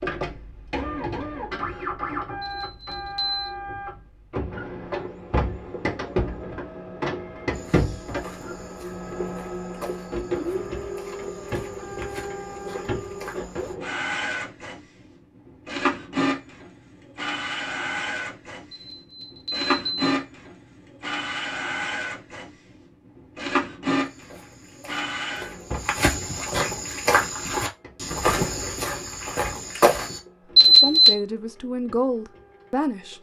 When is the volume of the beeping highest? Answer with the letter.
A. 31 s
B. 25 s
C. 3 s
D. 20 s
A.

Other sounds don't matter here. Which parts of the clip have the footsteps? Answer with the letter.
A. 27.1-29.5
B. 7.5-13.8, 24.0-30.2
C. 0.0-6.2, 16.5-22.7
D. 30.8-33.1
B.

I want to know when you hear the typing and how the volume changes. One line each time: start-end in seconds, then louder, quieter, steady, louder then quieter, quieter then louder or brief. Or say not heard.
not heard.